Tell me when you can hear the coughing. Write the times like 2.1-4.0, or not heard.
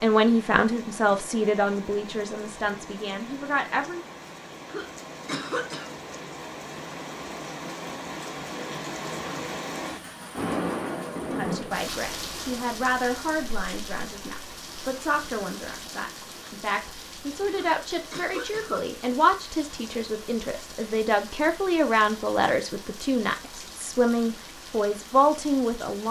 4.7-5.9, 17.5-18.9.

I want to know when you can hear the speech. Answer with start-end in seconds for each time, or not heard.
0.0-4.0, 11.3-26.0.